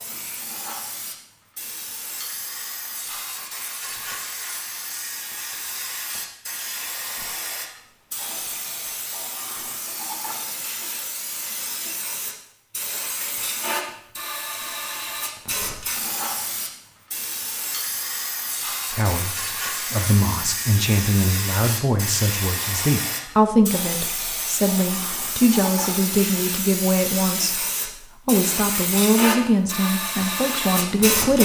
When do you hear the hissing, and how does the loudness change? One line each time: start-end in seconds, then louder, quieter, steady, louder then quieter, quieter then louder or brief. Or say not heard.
0.0-31.3 louder.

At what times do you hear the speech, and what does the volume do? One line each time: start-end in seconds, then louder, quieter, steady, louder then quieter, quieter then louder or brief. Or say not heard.
18.9-31.3 steady.